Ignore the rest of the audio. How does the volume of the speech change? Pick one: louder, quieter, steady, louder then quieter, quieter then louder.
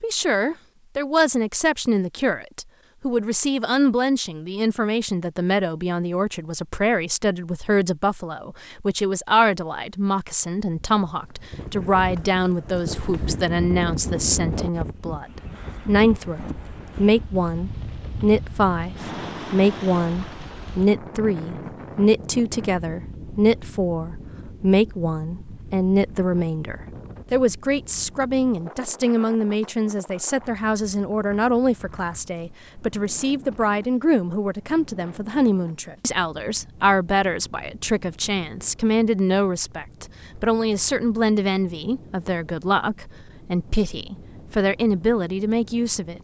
steady.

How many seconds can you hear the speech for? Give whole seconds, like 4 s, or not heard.
46 s.